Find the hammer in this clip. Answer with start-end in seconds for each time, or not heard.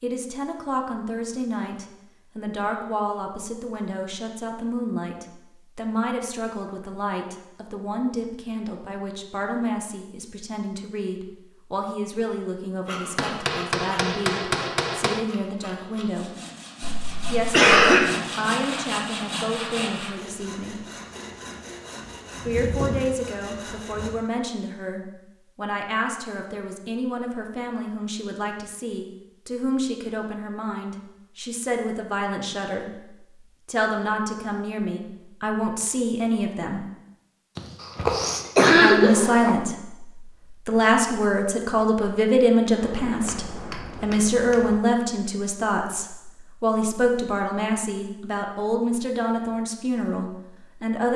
13.2-15.2, 42.8-44.8.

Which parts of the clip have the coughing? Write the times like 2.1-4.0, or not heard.
16.8-18.1, 37.5-39.5.